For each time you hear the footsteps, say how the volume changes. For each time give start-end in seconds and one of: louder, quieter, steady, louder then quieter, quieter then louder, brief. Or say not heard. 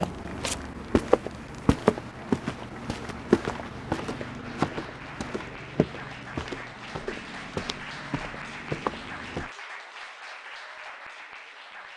0.0-9.5 quieter.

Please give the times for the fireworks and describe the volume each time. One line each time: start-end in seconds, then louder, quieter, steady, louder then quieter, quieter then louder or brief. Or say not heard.
not heard.